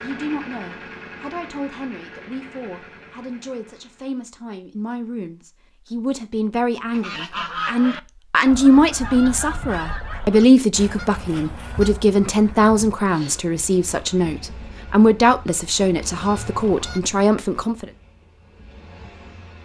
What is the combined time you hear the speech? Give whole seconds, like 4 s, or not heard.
18 s.